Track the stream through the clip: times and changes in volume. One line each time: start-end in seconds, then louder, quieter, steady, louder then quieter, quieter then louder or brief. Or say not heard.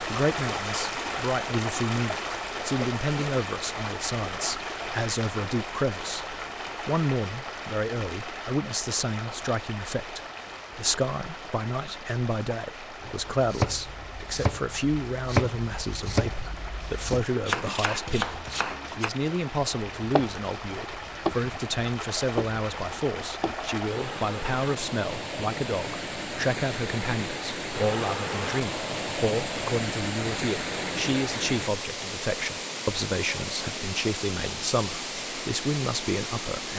0.0-36.7 quieter then louder.